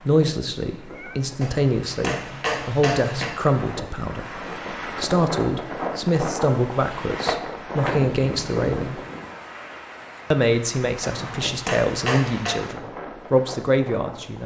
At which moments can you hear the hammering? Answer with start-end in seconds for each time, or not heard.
1.4-3.3, 11.0-12.6.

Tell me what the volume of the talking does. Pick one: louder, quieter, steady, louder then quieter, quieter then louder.
steady.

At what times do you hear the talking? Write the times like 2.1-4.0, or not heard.
0.1-9.0, 10.3-14.4.